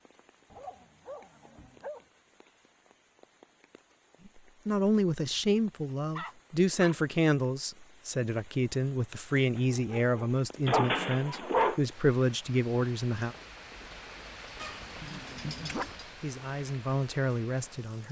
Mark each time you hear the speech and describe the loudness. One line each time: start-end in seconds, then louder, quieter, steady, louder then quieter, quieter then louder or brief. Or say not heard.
4.2-13.3 steady
15.6-18.0 brief.